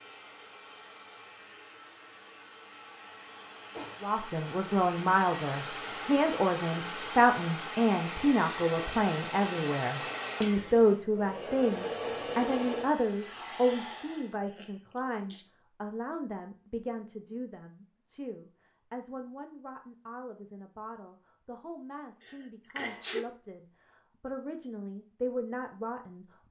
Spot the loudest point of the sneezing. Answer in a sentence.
The volume of the sneezing peaks at 23 seconds.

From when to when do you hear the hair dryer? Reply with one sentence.
You can hear the hair dryer from 0.0 to 14.3 s.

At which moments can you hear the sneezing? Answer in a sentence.
The sneezing can be heard from 3.6 to 4.1 s, from 14.4 to 15.4 s and from 22.2 to 23.2 s.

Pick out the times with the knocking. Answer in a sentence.
The knocking can't be heard in this clip.